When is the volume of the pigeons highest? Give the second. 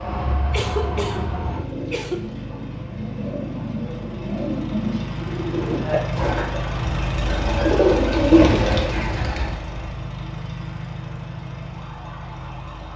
8 s.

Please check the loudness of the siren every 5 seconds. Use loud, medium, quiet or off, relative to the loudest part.
loud, off, quiet.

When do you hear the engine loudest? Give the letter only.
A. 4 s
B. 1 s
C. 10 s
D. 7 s
D.